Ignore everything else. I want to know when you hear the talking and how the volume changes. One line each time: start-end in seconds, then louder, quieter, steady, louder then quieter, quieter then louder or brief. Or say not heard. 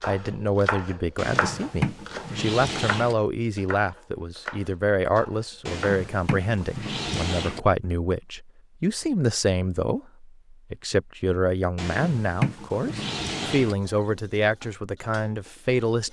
0.0-16.0 steady.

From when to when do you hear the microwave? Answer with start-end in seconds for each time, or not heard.
not heard.